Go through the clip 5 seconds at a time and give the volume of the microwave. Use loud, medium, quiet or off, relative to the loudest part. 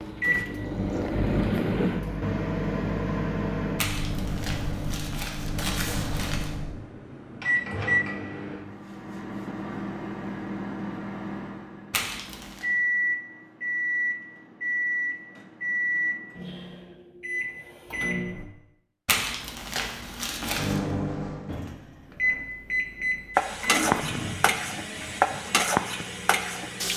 loud, loud, loud, loud, loud, quiet.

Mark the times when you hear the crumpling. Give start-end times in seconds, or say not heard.
3.8-6.5, 11.9-12.7, 19.1-20.8.